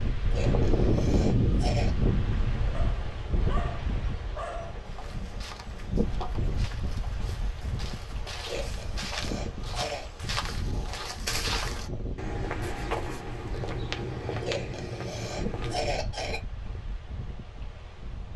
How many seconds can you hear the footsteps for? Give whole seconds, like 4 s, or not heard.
11 s.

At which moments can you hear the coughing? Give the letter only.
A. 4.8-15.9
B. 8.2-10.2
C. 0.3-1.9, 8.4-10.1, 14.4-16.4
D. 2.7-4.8
C.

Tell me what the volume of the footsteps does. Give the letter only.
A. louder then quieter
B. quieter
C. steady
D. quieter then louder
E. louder
E.